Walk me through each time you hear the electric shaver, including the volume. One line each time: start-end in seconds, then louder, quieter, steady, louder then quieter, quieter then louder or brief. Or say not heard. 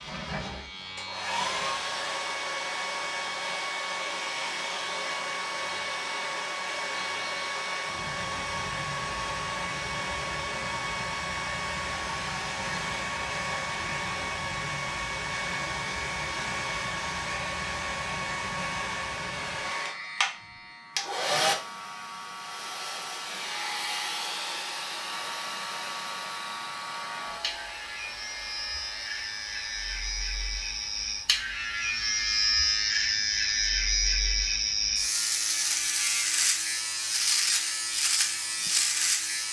0.0-39.4 louder.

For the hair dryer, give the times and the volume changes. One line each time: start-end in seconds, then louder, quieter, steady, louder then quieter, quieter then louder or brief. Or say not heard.
0.0-39.4 quieter.